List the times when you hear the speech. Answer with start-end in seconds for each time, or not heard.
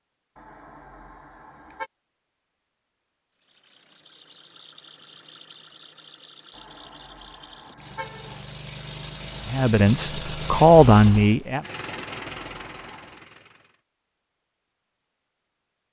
9.4-11.6.